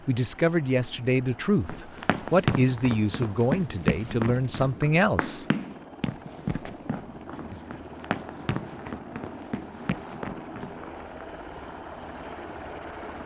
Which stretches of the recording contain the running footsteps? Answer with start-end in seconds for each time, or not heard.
1.6-11.0.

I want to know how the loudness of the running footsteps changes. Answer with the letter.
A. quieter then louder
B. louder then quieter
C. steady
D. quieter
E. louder
D.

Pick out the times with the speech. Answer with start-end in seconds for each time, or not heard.
0.1-5.5.